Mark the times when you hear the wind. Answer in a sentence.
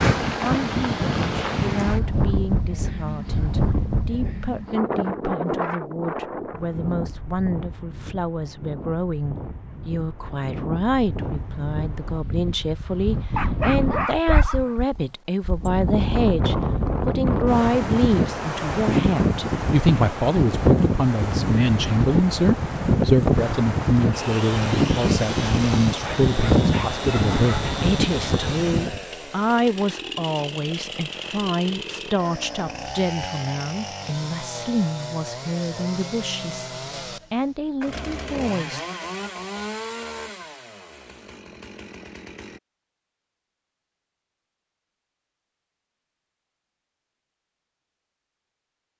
You can hear the wind from 0.0 to 29.0 s.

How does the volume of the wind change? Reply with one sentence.
The volume of the wind goes down, then up.